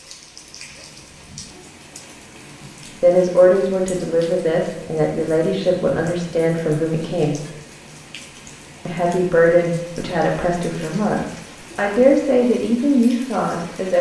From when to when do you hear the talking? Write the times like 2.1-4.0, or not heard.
3.0-7.4, 8.8-13.9.